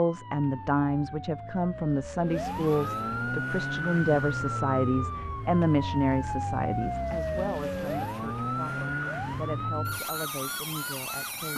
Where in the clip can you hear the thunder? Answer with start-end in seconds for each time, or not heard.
not heard.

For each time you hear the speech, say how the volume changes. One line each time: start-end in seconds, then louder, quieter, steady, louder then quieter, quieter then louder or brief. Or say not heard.
0.0-11.5 quieter.